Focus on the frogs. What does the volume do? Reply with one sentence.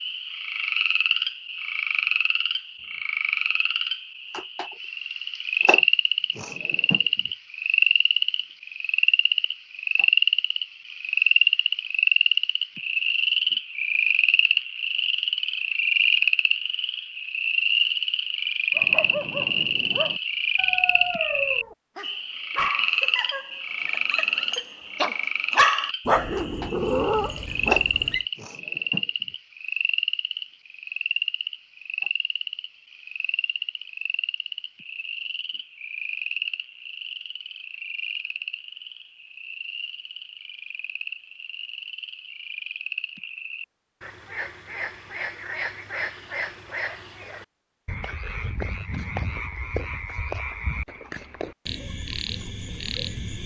The loudness of the frogs goes down.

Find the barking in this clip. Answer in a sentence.
The barking can be heard from 18.8 to 28.2 s.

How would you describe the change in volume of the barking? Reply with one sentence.
The volume of the barking goes up.